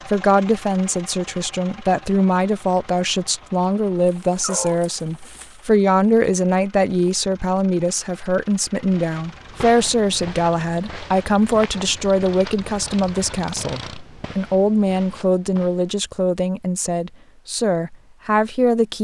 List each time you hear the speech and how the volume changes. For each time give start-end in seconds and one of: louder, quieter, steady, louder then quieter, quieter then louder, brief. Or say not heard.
0.1-18.9 steady.